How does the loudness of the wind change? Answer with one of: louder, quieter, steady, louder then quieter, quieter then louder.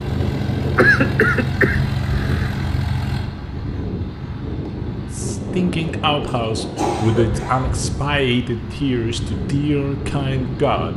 steady.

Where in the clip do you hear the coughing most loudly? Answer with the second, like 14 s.
1 s.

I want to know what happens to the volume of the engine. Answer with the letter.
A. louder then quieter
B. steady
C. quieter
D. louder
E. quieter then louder
C.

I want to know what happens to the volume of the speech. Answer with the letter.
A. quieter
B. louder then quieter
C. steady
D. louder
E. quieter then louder
C.